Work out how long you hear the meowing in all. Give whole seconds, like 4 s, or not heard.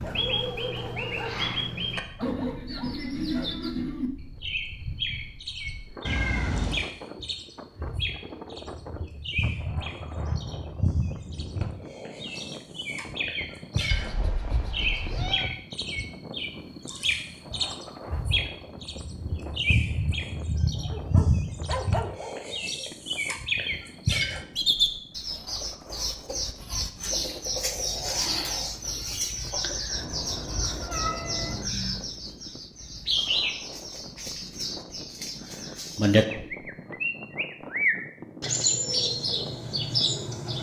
4 s.